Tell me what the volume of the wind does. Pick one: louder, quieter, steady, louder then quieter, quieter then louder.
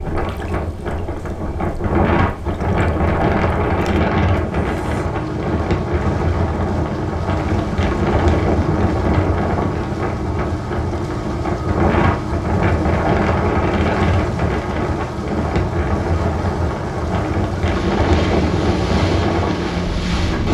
steady.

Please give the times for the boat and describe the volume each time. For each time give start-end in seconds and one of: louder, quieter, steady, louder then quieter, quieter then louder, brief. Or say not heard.
0.0-20.4 louder.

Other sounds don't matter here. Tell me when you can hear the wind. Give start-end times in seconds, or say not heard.
0.0-20.4.